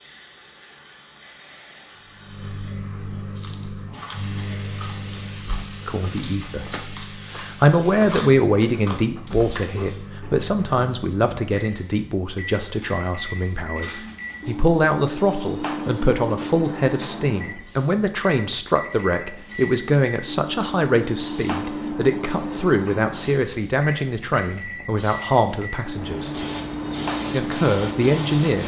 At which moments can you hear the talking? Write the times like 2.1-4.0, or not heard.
5.8-6.7, 7.3-26.3, 27.3-28.6.